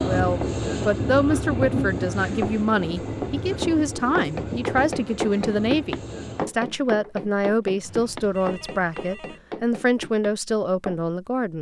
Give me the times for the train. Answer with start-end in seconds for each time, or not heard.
0.0-6.5.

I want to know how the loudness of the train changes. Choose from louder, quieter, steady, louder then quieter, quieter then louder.
quieter.